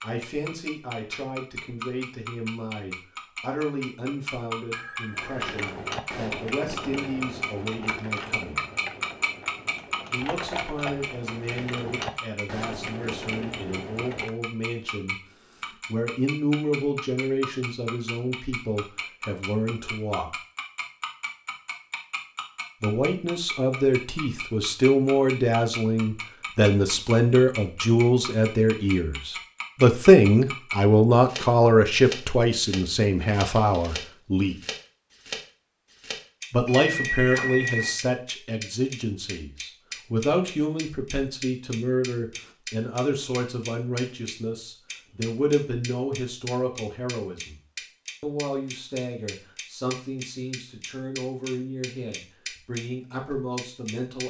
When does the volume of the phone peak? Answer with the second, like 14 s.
37 s.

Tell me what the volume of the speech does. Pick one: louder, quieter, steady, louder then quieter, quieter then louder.
louder then quieter.